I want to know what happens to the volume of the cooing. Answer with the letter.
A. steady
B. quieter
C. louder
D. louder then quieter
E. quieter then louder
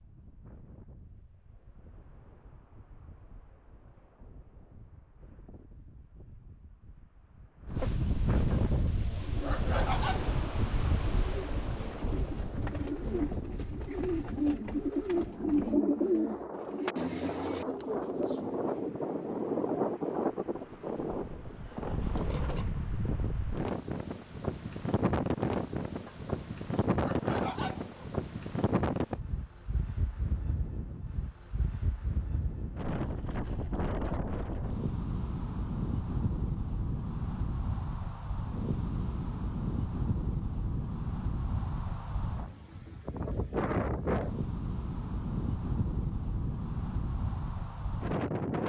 D.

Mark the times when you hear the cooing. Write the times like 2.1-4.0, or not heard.
8.8-18.9.